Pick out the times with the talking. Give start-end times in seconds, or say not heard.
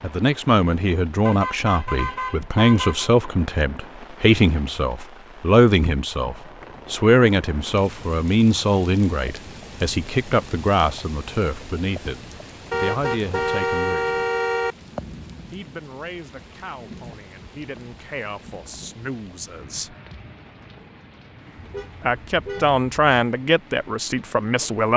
0.0-14.2, 15.5-19.9, 22.0-24.9.